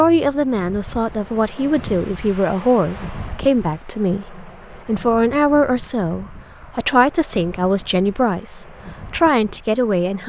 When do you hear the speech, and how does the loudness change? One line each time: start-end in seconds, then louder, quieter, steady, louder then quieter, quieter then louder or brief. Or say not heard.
0.0-10.2 steady.